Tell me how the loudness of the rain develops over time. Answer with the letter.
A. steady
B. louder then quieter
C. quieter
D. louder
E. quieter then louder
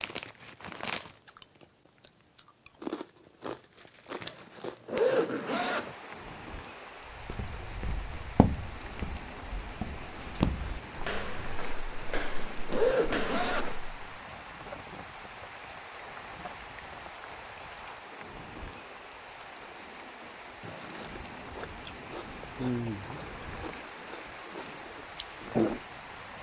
A.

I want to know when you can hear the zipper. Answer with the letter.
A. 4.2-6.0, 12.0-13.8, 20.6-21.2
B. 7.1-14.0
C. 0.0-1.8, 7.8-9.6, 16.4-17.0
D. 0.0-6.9
A.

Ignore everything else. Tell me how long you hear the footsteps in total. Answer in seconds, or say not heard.
7 s.